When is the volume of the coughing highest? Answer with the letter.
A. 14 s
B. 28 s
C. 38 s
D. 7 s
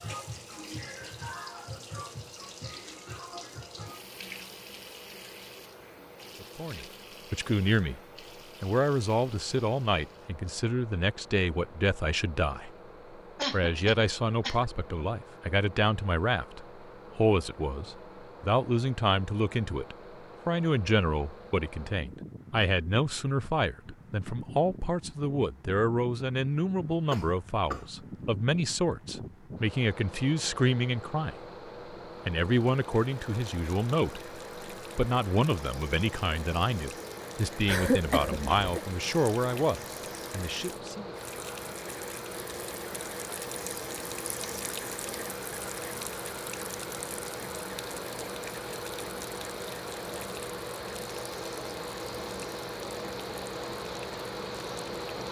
C.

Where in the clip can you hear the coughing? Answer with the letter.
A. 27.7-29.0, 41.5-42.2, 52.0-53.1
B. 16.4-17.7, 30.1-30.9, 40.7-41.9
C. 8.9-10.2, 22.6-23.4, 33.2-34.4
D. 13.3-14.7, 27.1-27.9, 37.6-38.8
D.